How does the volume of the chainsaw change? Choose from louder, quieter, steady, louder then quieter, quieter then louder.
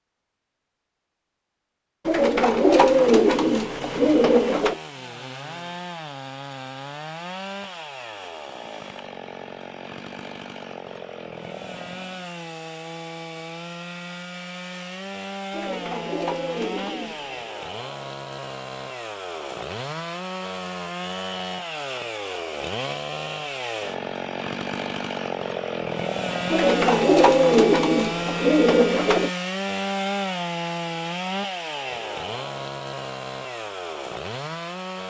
louder.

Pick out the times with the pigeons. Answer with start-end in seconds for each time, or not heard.
2.0-4.8, 15.5-17.4, 26.5-29.3.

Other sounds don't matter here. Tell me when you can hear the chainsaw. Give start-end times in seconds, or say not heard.
2.8-35.0.